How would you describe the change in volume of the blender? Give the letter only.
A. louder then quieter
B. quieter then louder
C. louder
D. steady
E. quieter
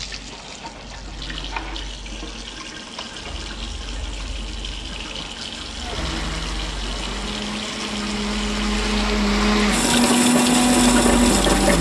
C.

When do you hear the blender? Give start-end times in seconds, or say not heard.
5.8-11.7.